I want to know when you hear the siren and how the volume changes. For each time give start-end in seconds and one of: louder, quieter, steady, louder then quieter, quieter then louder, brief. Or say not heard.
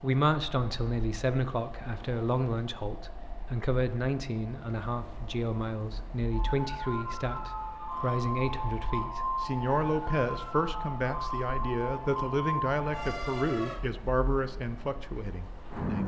6.3-13.8 steady.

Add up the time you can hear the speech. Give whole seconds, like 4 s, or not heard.
16 s.